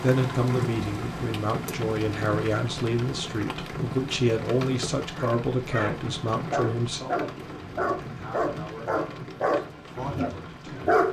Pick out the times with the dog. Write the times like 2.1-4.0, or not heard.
5.1-11.0.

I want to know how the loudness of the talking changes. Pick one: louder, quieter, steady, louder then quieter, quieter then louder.
quieter.